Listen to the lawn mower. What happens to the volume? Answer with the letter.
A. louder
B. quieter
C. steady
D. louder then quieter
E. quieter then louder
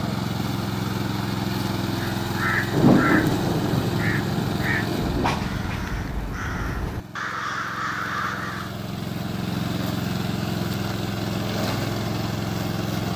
E.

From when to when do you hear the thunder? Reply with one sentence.
The thunder can be heard from 2.7 to 5.4 s.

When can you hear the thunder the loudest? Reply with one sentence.
The loudest moment of the thunder is at 3 seconds.